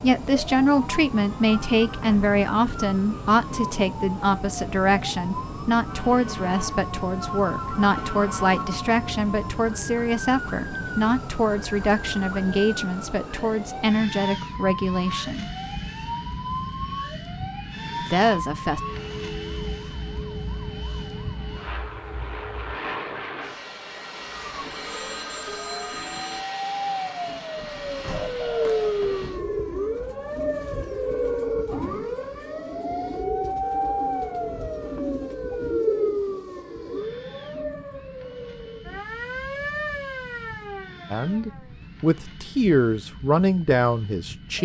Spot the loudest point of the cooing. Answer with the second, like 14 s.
36 s.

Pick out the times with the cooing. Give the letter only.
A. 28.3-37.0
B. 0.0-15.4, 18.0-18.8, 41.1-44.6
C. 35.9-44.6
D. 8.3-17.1
A.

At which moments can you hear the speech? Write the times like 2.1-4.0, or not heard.
0.0-15.4, 18.0-18.8, 41.1-44.6.